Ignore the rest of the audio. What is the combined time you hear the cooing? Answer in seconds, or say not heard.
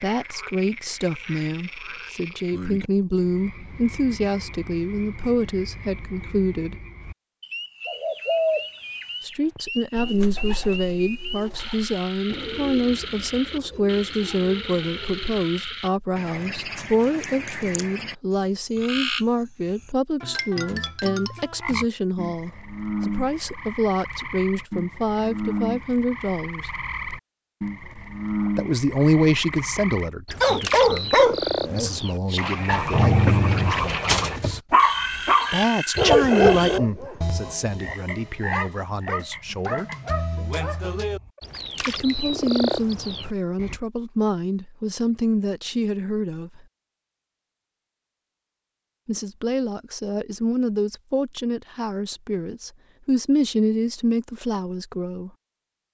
8 s.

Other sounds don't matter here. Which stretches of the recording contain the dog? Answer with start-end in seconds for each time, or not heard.
30.4-41.4.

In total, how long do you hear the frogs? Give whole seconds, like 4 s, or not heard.
44 s.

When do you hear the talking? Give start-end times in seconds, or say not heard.
0.0-6.8, 9.2-26.7, 28.6-34.6, 35.5-39.9, 41.9-46.6, 49.0-55.3.